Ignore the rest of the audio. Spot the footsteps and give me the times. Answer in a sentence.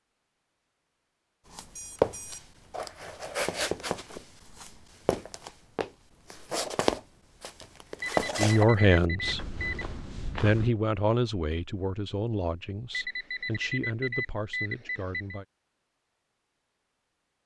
You can hear the footsteps from 1.5 to 10.7 s.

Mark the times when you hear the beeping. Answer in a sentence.
The beeping can be heard from 1.8 to 2.9 s, from 8.0 to 9.8 s and from 12.9 to 15.4 s.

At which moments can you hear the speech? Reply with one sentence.
You can hear the speech from 8.3 to 9.6 s and from 10.4 to 15.4 s.